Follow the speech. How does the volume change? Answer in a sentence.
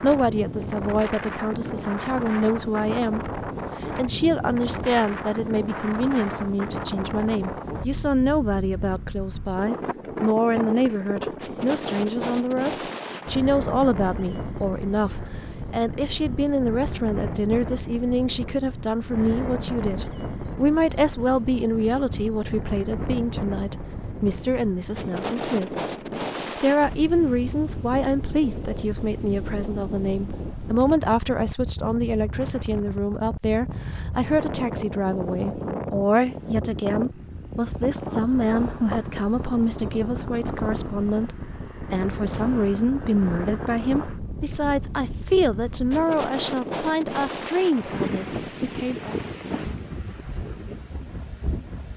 The volume of the speech stays about the same.